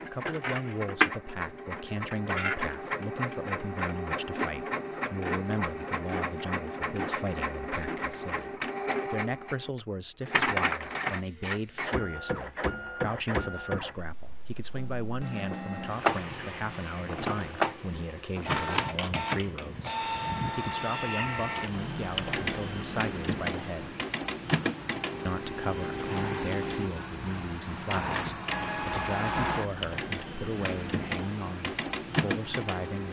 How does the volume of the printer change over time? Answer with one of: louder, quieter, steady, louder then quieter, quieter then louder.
steady.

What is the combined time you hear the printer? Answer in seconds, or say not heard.
33 s.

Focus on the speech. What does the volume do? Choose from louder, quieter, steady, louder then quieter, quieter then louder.
steady.